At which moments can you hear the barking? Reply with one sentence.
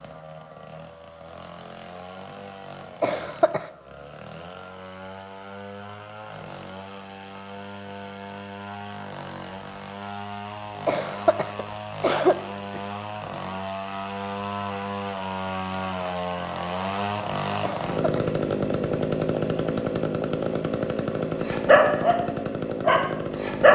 The barking can be heard from 21.4 to 22.2 s and from 22.8 to 23.7 s.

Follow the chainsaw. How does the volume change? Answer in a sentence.
The volume of the chainsaw goes up.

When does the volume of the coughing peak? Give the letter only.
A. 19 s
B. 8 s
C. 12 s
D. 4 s
C.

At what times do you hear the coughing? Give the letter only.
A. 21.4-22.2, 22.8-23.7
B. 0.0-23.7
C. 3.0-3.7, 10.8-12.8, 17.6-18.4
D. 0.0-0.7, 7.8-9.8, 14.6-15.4
C.